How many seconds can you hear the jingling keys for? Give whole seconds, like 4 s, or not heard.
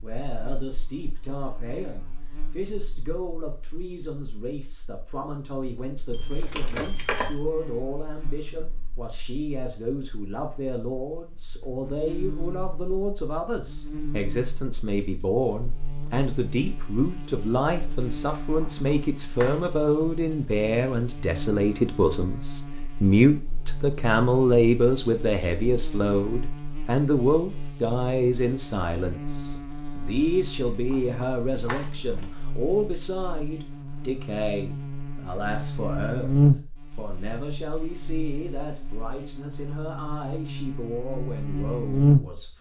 4 s.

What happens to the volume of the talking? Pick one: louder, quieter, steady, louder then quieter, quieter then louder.
louder then quieter.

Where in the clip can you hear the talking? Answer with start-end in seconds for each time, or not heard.
0.0-42.5.